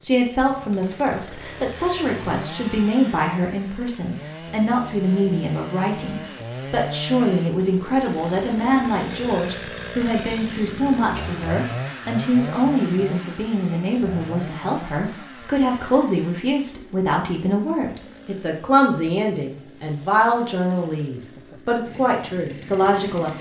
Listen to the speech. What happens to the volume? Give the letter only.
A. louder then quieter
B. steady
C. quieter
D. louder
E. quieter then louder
B.